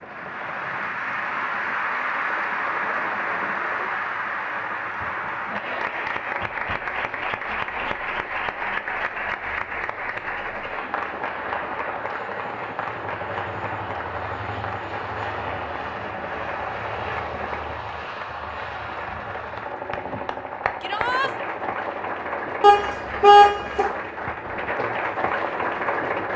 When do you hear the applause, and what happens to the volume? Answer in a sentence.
You can hear the applause from 0.0 to 26.3 s, getting quieter then louder.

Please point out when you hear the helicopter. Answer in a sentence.
The helicopter can be heard from 0.0 to 26.3 s.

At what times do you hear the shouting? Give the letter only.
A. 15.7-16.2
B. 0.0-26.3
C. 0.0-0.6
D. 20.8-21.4
D.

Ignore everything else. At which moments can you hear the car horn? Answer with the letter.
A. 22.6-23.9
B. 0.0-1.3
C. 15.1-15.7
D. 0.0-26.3
A.